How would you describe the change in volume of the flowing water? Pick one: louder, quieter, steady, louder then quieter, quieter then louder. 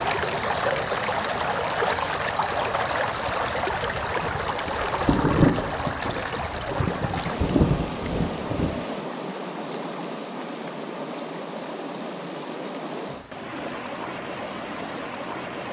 quieter.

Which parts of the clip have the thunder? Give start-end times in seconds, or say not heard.
4.2-8.8.